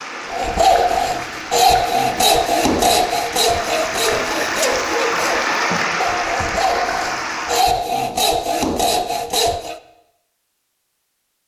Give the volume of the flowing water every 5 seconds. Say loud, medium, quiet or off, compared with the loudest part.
medium, loud, off.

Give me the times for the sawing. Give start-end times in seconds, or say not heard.
0.3-9.8.